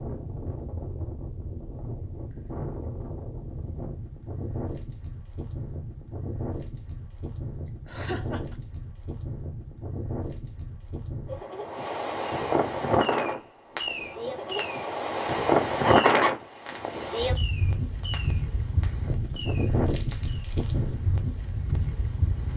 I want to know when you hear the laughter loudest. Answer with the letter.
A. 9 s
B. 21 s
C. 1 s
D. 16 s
D.